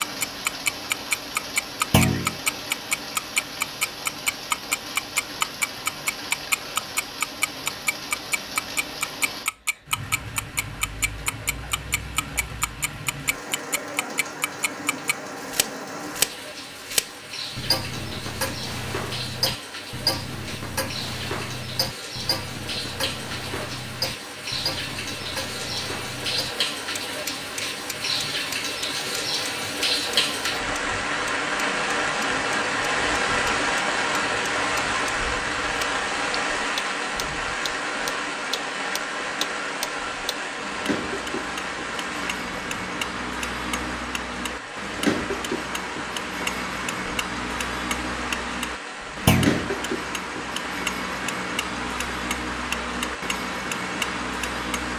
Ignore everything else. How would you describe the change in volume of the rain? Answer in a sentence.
The volume of the rain goes up, then down.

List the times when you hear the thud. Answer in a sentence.
The thud can be heard from 1.9 to 2.4 s and from 49.2 to 49.7 s.